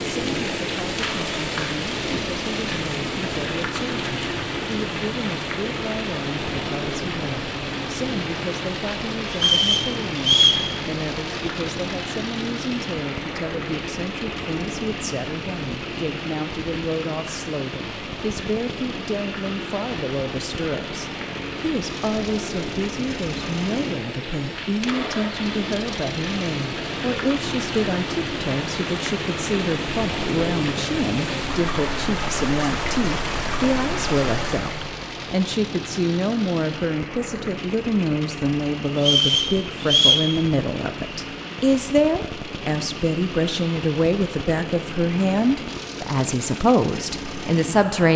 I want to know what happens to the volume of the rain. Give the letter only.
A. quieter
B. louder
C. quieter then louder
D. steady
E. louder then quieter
C.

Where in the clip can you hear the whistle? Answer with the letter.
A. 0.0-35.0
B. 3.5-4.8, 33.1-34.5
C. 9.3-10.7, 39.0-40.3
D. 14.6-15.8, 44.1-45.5
C.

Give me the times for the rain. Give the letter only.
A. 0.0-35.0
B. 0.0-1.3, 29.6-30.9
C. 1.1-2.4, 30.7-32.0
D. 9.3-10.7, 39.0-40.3
A.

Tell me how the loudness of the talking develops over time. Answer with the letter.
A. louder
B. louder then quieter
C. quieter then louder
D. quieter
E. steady
A.